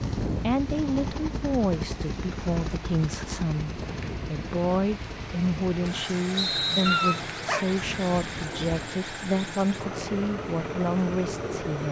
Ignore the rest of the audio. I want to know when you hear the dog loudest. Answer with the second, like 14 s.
7 s.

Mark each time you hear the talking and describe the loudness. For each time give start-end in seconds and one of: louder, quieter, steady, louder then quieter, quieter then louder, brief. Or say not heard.
0.2-11.8 steady.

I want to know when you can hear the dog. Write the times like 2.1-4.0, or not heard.
6.8-8.8.